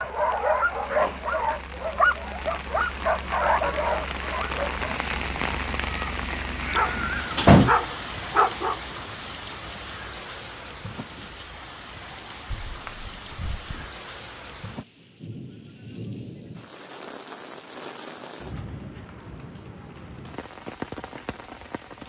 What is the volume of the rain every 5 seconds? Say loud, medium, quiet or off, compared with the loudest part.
loud, loud, medium, medium, medium.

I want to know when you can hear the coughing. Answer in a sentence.
The coughing can't be heard in this clip.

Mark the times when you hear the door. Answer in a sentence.
You can hear the door from 7.0 to 7.8 s and from 12.5 to 13.9 s.